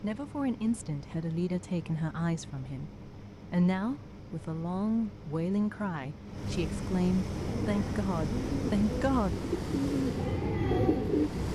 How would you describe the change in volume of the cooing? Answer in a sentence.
The loudness of the cooing goes up.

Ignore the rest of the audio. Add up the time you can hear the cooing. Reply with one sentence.
The cooing can be heard for 4 seconds in total.